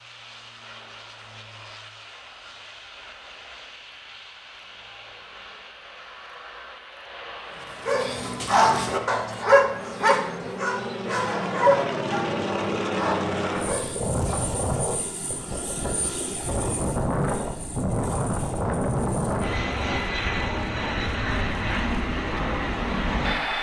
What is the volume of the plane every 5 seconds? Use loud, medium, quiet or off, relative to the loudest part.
quiet, quiet, loud, loud, loud.